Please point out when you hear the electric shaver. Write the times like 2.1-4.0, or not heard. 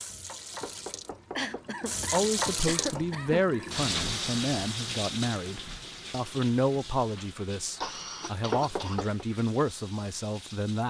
not heard.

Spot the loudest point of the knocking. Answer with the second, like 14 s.
9 s.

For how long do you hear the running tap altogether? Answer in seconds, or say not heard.
11 s.